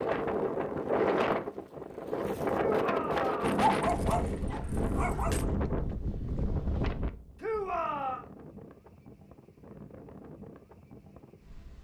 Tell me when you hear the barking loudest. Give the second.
4 s.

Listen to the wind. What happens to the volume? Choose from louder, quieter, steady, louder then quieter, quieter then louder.
quieter.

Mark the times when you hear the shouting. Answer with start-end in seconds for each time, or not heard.
2.8-3.6, 7.4-8.2.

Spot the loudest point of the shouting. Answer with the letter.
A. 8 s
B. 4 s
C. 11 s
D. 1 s
A.